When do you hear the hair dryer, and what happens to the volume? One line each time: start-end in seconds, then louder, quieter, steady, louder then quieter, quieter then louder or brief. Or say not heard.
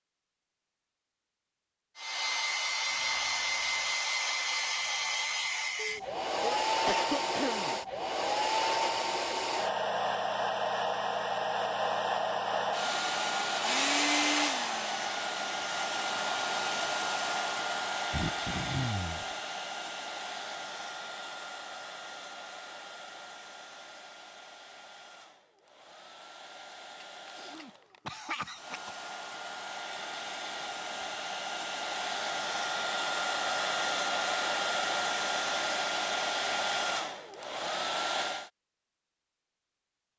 1.9-38.5 quieter then louder.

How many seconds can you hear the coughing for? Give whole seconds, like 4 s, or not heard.
5 s.